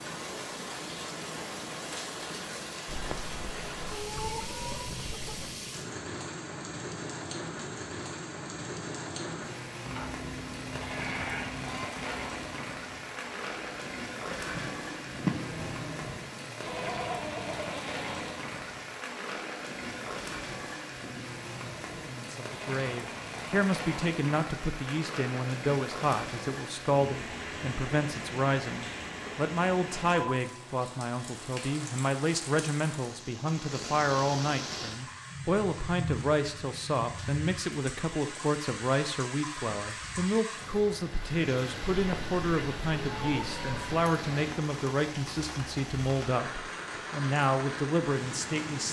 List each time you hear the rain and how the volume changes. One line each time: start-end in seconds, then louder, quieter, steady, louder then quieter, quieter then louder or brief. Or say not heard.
0.0-48.8 steady.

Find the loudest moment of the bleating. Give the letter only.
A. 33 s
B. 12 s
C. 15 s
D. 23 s
C.